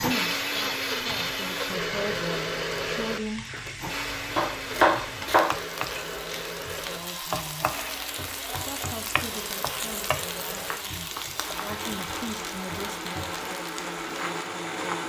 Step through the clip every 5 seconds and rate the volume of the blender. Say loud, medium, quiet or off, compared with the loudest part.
loud, medium, medium.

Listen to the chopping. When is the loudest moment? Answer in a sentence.
The loudest moment of the chopping is at 5 seconds.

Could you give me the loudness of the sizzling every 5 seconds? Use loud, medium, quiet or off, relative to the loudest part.
medium, loud, loud.